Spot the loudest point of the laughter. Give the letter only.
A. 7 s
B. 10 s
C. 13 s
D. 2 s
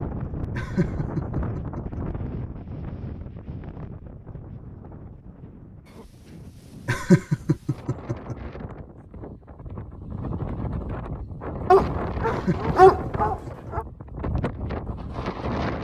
A.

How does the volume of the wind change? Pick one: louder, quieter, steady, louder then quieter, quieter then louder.
quieter then louder.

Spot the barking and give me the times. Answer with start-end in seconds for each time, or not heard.
11.7-13.8.